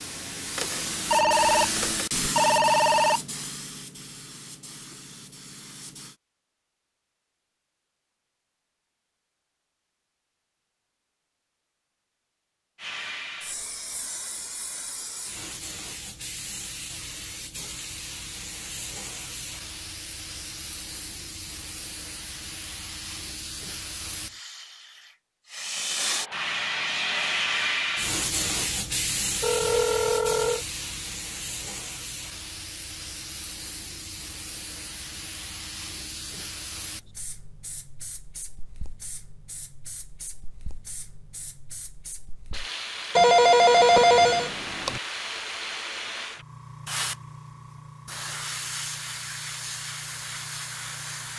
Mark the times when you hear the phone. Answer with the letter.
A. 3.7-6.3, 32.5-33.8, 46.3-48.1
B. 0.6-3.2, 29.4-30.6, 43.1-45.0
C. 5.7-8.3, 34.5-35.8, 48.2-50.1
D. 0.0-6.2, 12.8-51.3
B.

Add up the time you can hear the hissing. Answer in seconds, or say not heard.
45 s.